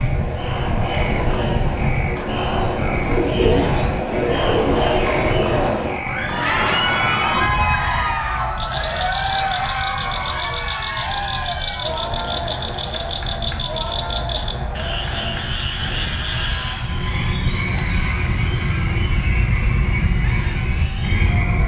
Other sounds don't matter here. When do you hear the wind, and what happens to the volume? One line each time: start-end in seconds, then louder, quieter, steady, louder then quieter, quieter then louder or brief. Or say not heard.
0.0-21.6 quieter then louder.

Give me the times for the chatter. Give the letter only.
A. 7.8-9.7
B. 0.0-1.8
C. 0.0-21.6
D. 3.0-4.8
C.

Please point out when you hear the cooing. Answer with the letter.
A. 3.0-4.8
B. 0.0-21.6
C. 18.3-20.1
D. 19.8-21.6
A.